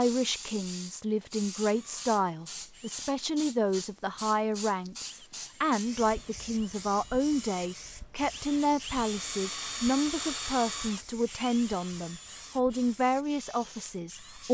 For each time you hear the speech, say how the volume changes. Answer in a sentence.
You can hear the speech from 0.0 to 14.4 s, at a steady volume.